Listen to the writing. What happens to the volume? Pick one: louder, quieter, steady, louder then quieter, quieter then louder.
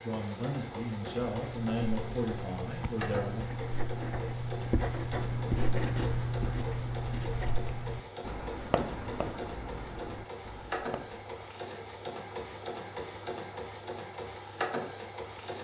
louder then quieter.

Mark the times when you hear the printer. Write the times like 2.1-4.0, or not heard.
0.0-15.5.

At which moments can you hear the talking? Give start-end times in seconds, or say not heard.
0.0-3.5.